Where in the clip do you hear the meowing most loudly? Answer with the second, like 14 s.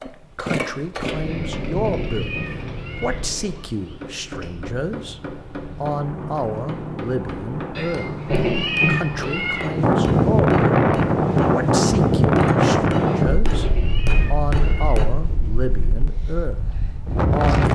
9 s.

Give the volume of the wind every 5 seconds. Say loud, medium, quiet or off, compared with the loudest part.
quiet, medium, loud, medium.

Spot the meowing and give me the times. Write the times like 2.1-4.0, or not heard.
1.2-4.0, 7.8-9.7, 13.1-15.0.